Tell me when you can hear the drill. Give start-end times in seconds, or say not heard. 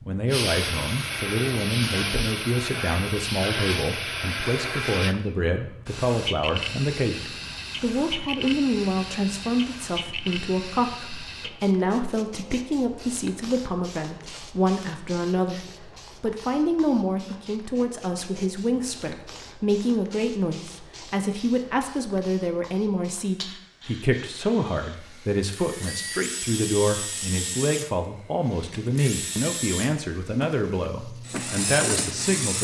25.1-32.5.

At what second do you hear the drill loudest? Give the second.
32 s.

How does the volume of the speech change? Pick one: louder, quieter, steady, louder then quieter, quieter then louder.
steady.